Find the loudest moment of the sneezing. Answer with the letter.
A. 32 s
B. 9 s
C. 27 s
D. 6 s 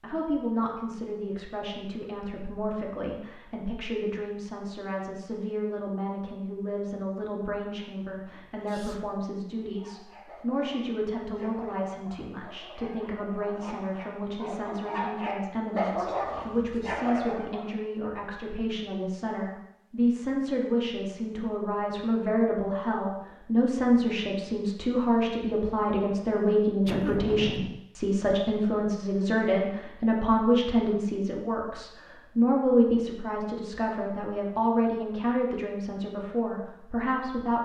C.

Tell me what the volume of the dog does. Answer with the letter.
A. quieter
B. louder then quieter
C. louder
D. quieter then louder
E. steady
C.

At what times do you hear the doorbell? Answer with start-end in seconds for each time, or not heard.
not heard.